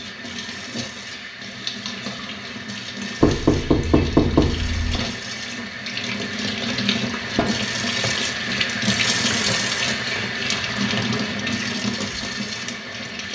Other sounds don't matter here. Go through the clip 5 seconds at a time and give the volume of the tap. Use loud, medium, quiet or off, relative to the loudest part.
medium, loud, loud.